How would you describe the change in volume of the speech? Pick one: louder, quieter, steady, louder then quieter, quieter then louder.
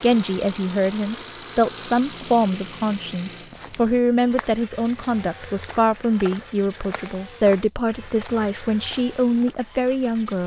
steady.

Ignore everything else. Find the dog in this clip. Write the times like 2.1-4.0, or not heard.
not heard.